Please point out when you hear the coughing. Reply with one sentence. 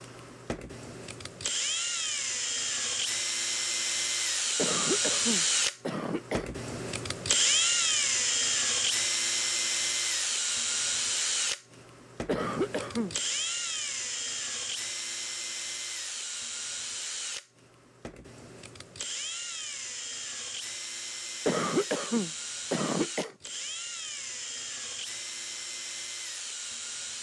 You can hear the coughing from 4.5 to 6.5 s, from 12.2 to 13.2 s and from 21.4 to 23.4 s.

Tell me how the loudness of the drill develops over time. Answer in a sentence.
The volume of the drill goes down.